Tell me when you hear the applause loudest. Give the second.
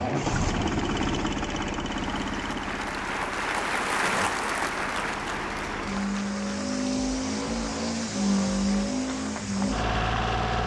4 s.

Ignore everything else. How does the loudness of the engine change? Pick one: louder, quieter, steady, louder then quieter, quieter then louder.
quieter then louder.